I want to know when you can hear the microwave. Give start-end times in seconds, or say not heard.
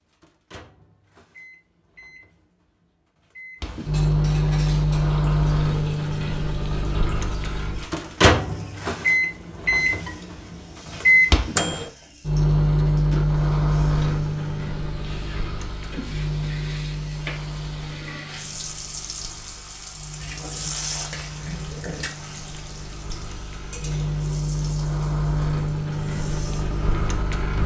0.0-27.6.